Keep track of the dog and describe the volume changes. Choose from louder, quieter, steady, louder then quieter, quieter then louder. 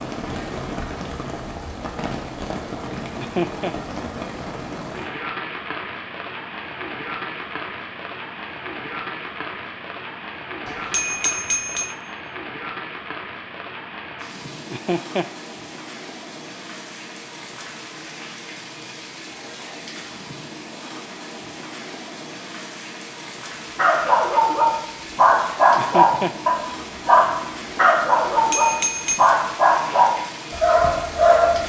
steady.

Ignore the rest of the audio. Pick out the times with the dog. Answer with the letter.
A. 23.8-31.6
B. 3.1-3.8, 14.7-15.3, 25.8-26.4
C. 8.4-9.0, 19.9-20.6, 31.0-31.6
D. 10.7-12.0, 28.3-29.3
A.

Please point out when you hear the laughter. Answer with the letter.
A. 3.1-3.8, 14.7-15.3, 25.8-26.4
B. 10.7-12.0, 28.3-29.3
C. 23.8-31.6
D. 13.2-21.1
A.